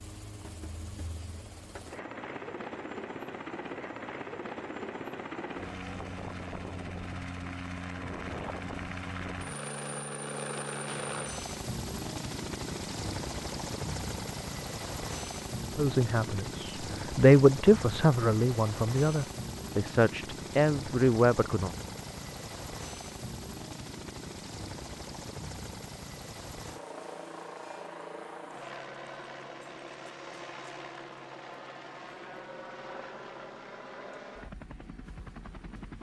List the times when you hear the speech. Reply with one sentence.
You can hear the speech from 15.8 to 21.7 s.